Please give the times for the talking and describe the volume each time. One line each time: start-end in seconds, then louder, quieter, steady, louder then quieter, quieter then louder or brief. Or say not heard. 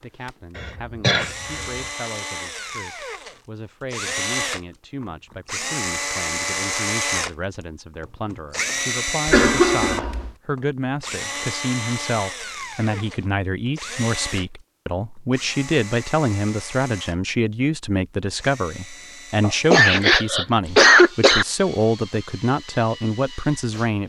0.0-24.0 louder.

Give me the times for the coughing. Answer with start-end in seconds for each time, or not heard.
0.6-1.6, 9.2-10.3, 19.4-21.4.